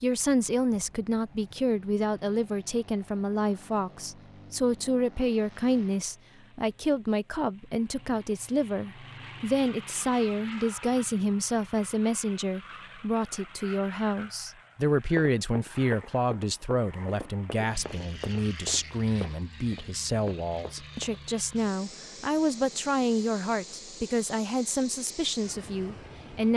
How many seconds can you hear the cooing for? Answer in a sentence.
You can't hear the cooing here.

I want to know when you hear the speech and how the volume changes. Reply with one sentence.
The speech can be heard from 0.0 to 26.5 s, at a steady volume.